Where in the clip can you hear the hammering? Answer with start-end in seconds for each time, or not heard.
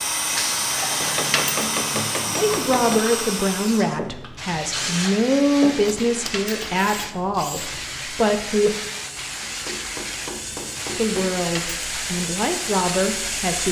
1.0-3.0, 5.8-7.1, 9.4-11.3.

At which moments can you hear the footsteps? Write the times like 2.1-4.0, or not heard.
not heard.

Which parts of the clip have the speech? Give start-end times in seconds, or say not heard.
2.4-8.8, 10.9-13.6.